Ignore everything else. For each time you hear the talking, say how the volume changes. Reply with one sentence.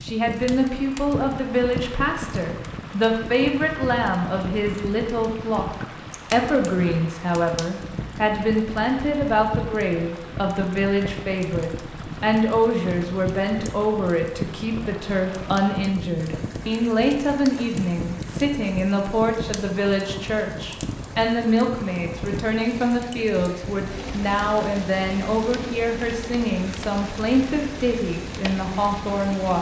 The talking can be heard from 0.0 to 29.5 s, at a steady volume.